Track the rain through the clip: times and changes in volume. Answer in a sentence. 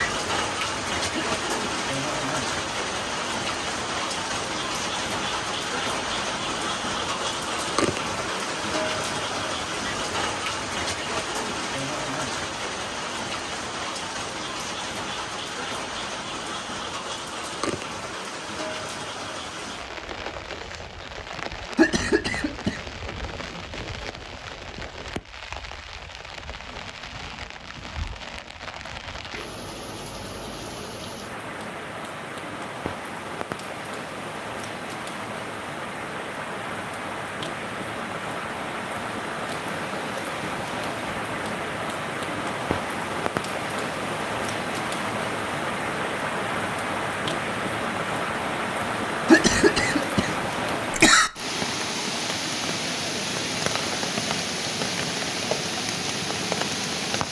You can hear the rain from 0.0 to 57.2 s, getting quieter then louder.